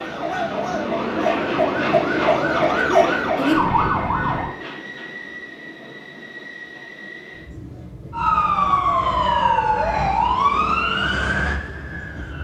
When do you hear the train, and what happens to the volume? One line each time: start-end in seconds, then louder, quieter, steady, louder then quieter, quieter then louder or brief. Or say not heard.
0.0-12.3 quieter.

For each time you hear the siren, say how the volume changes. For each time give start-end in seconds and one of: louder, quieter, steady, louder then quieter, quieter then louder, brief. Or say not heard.
0.0-4.5 louder
8.1-12.3 quieter.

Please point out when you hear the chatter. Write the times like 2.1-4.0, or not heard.
not heard.